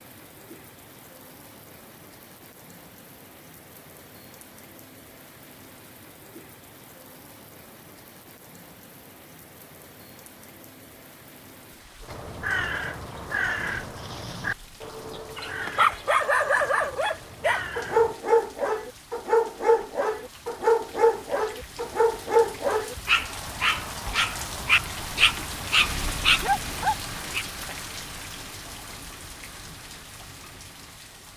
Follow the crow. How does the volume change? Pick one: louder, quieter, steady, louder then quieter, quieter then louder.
quieter.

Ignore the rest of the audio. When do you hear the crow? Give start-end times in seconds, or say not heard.
12.0-18.1.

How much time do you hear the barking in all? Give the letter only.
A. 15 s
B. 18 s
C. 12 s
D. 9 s
C.